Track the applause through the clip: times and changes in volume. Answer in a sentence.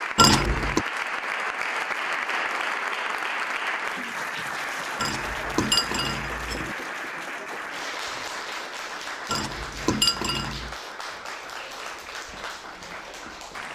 The applause can be heard from 0.0 to 13.7 s, getting quieter.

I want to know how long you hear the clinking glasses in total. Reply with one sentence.
The clinking glasses can be heard for 4 seconds in total.